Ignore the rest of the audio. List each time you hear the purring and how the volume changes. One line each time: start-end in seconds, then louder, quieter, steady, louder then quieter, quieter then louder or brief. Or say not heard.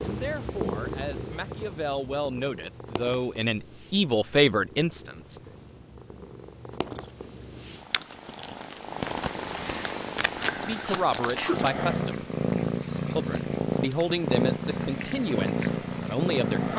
0.0-16.7 quieter then louder.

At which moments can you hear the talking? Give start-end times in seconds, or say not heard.
0.0-5.4, 10.6-12.2, 13.2-16.7.